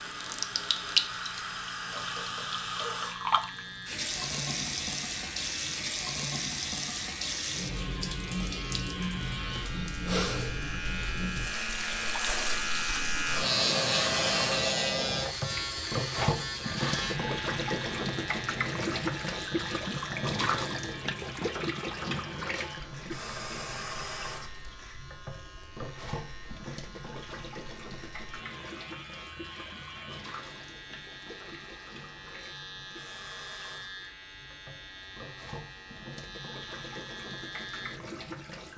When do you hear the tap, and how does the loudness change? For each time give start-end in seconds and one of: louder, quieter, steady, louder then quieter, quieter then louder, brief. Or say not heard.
0.0-38.7 quieter.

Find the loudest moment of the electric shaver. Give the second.
14 s.